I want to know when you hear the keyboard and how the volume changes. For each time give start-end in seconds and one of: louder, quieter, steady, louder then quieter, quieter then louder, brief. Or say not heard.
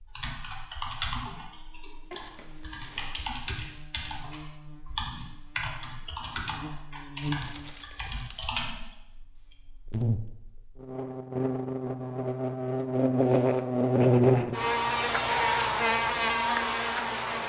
0.1-9.6 steady.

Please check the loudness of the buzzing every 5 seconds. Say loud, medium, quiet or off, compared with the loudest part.
quiet, quiet, loud, loud.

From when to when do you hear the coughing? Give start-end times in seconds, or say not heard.
not heard.